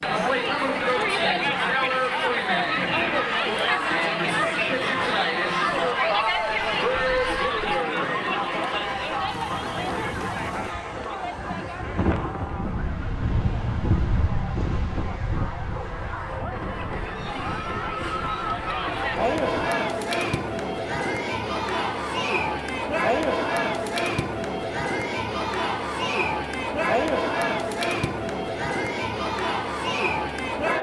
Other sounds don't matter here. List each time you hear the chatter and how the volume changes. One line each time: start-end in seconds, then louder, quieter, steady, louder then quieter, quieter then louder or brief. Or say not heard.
0.0-30.7 quieter then louder.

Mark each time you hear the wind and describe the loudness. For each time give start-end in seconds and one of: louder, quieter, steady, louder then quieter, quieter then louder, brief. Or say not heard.
0.0-19.5 louder then quieter.